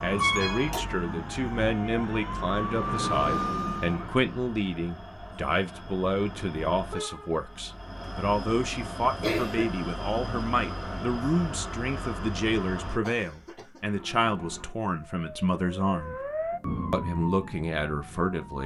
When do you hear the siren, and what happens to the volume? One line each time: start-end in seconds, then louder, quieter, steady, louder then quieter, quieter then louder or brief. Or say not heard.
0.1-4.2 louder
13.8-18.6 louder then quieter.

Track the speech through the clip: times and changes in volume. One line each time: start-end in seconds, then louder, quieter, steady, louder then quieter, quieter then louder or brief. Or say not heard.
0.0-16.2 steady
16.9-18.6 brief.